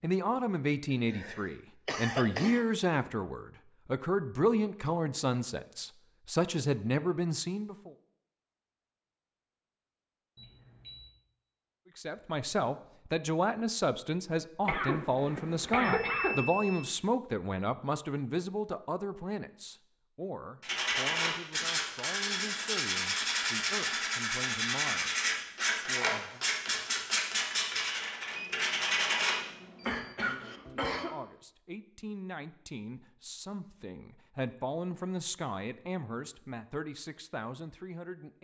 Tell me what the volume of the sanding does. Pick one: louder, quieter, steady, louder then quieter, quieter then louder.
steady.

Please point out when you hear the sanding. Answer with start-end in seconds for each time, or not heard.
20.6-29.4.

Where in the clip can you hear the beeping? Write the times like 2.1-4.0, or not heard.
10.3-11.1, 15.9-16.9, 28.4-30.1.